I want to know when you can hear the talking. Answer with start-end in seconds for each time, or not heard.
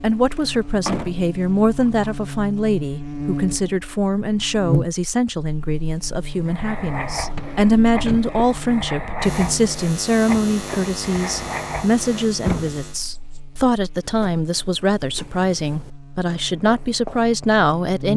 0.0-18.1.